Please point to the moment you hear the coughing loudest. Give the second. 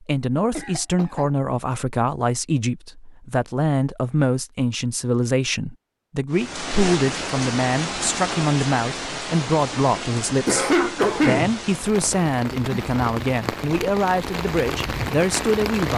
11 s.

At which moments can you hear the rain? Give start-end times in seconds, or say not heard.
6.3-15.9.